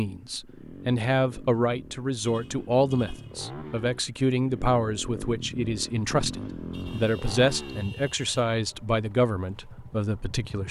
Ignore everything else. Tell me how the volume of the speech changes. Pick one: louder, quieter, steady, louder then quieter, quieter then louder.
steady.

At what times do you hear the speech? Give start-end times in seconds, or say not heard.
0.0-10.6.